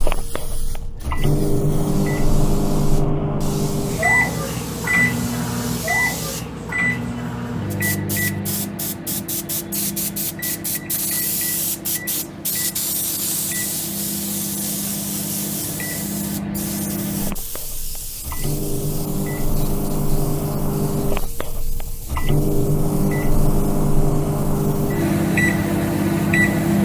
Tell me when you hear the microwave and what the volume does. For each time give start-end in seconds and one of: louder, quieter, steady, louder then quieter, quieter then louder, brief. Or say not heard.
0.0-26.8 quieter then louder.